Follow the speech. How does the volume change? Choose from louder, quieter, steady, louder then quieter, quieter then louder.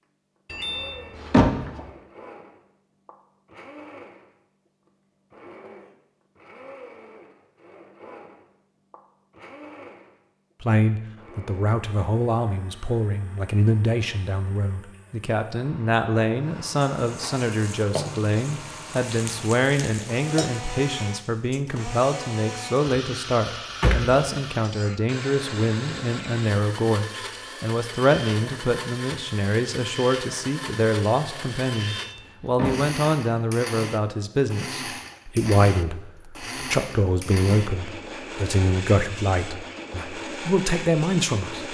steady.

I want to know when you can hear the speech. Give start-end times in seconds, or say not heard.
10.6-41.6.